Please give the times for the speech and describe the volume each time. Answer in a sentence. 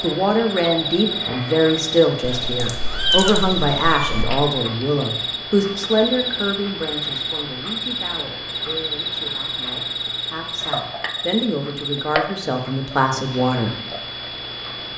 You can hear the speech from 0.0 to 13.8 s, getting quieter then louder.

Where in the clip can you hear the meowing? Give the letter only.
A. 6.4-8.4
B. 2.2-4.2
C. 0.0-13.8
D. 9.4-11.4
B.